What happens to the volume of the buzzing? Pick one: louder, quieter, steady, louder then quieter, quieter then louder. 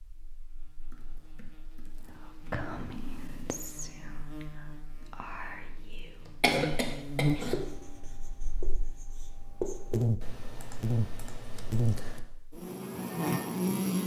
louder.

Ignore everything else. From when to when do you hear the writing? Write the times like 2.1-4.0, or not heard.
7.5-10.1.